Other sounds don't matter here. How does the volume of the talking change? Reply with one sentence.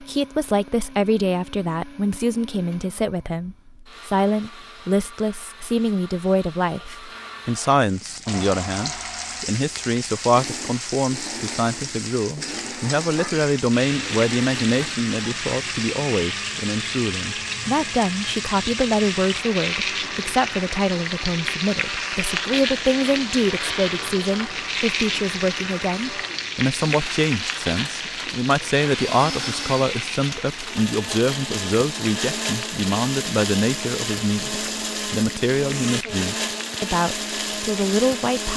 The volume of the talking stays about the same.